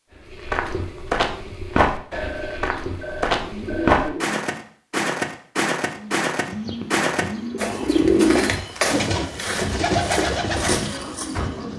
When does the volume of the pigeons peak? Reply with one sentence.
The volume of the pigeons peaks at 8 seconds.